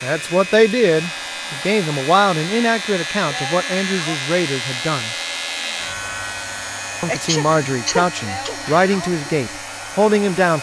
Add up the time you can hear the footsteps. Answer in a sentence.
You can't hear the footsteps here.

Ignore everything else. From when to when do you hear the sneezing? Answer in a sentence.
You can hear the sneezing from 7.0 to 8.6 s.